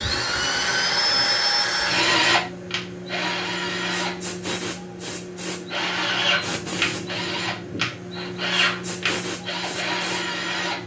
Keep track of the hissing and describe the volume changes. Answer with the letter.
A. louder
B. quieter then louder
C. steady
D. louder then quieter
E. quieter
A.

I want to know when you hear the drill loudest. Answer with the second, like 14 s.
2 s.